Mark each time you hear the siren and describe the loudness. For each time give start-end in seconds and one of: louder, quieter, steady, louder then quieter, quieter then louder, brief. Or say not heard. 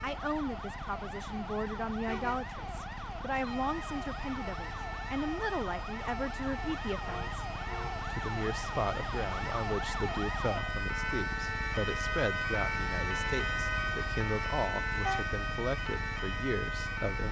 0.0-17.2 louder.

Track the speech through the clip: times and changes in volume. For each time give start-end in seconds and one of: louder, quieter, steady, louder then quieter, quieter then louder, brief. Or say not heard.
0.0-17.2 steady.